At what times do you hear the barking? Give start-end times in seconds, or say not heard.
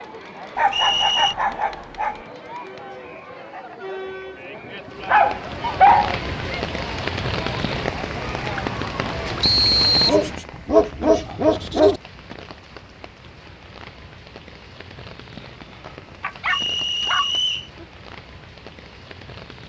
0.6-2.1, 5.0-6.2, 10.1-12.0, 16.2-17.9.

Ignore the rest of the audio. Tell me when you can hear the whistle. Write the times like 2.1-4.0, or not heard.
0.7-1.4, 9.4-10.2, 16.5-17.6.